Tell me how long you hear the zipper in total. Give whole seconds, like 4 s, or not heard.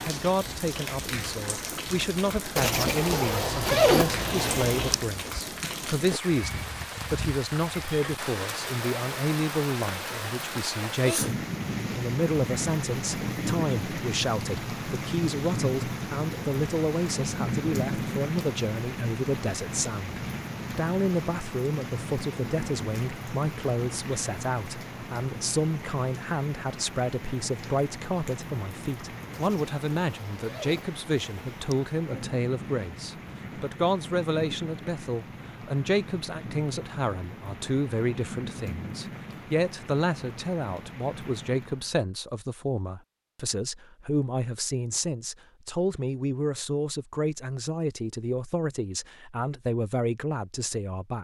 5 s.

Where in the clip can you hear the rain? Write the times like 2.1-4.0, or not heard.
0.0-42.0.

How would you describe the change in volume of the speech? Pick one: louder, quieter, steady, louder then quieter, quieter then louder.
steady.